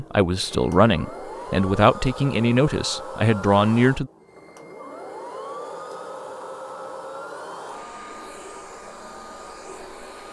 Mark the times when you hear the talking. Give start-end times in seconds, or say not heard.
0.0-4.1.